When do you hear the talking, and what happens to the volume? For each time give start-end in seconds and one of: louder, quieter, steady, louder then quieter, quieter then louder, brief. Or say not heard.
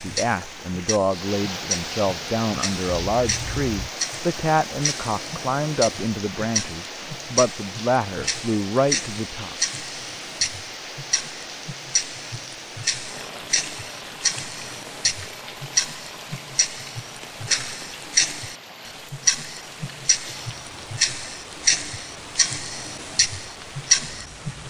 0.0-9.6 steady.